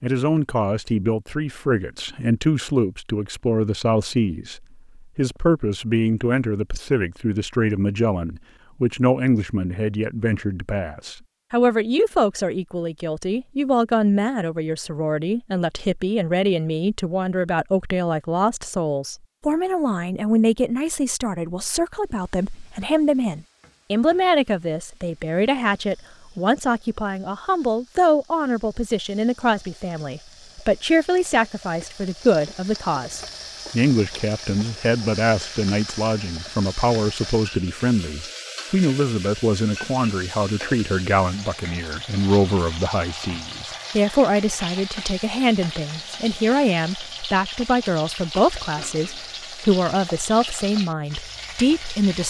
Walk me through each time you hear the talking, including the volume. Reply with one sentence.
You can hear the talking from 0.0 to 52.2 s, at a steady volume.